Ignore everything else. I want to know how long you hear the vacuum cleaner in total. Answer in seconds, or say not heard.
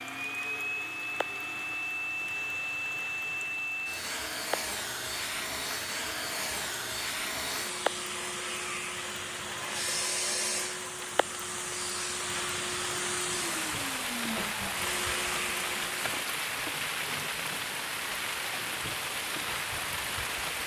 16 s.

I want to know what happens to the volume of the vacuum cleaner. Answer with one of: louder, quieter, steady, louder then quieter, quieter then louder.
steady.